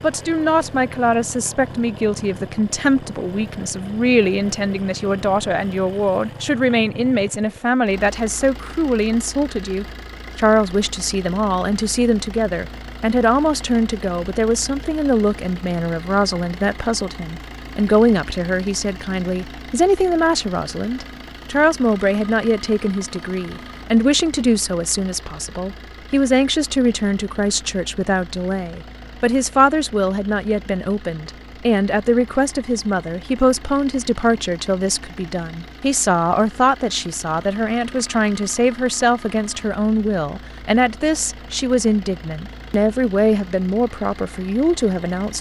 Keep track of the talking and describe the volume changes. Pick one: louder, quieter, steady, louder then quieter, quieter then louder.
steady.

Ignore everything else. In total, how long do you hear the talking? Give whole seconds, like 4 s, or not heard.
45 s.